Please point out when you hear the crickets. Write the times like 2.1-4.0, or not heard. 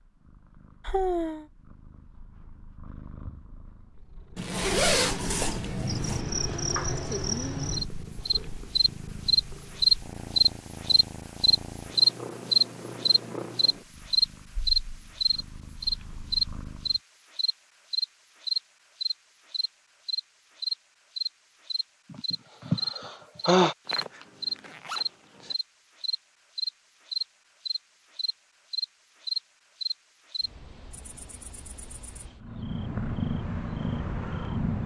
5.5-34.5.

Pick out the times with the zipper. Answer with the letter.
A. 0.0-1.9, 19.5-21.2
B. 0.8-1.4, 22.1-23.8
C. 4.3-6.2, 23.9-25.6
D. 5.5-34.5
C.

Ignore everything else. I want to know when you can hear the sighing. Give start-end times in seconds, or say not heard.
0.8-1.4, 22.1-23.8.